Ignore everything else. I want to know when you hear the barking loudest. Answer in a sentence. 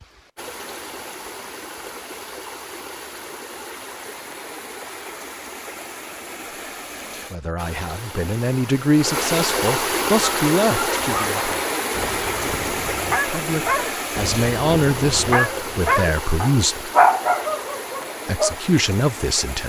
The loudest moment of the barking is at 17 seconds.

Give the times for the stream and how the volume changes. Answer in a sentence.
You can hear the stream from 0.0 to 19.6 s, getting louder then quieter.